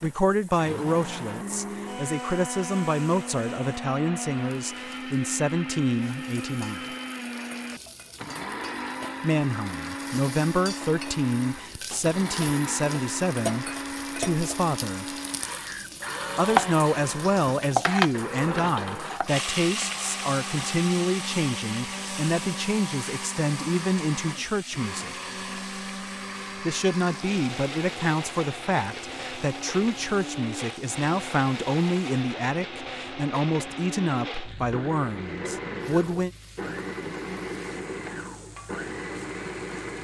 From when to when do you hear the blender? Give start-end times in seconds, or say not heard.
0.0-39.9.